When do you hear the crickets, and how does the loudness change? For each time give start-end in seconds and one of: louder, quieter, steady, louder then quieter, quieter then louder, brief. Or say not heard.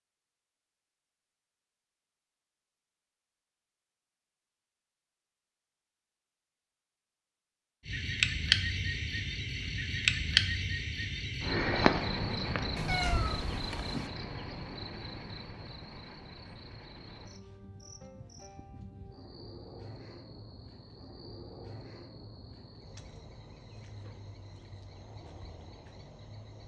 7.8-26.6 quieter.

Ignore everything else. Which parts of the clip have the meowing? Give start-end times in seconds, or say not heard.
12.8-14.1.